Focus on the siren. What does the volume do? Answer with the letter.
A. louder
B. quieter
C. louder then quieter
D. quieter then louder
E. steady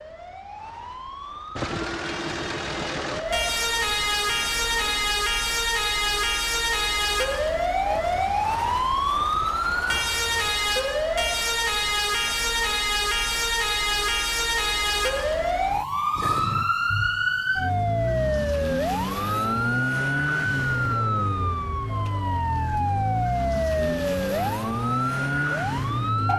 E.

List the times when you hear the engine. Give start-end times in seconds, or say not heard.
1.6-5.2.